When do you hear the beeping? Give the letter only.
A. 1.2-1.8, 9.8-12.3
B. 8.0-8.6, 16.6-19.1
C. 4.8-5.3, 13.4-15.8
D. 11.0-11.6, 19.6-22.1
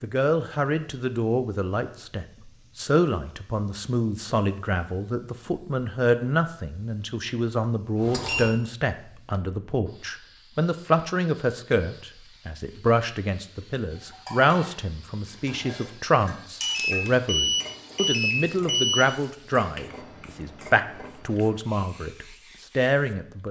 B.